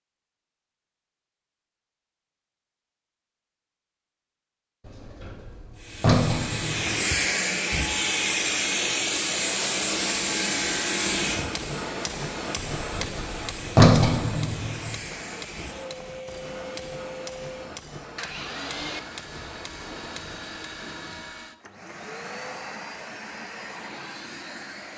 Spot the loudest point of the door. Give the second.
14 s.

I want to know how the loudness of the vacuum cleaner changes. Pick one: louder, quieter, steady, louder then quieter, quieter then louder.
quieter.